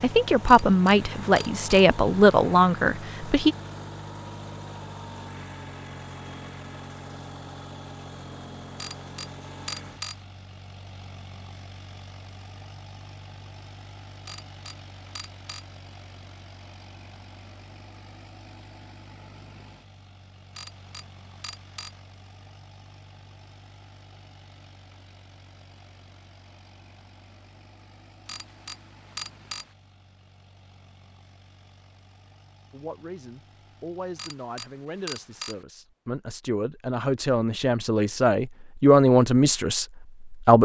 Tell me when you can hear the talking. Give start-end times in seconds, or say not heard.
0.0-3.5, 32.7-40.6.